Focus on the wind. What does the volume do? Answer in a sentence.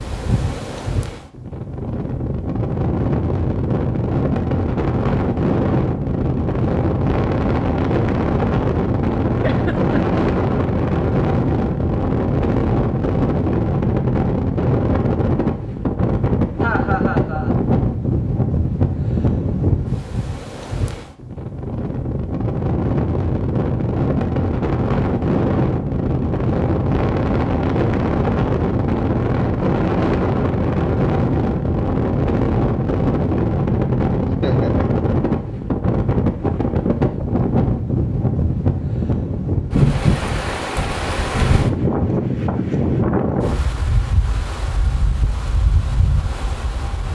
The volume of the wind stays about the same.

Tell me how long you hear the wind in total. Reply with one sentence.
The wind can be heard for 47 seconds in total.